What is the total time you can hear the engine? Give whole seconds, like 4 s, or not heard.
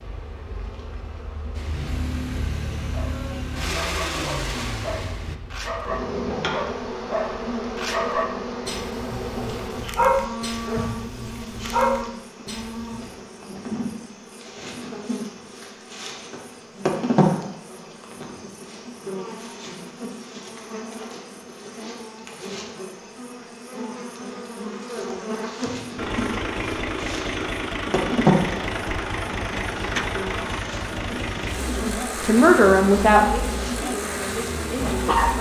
13 s.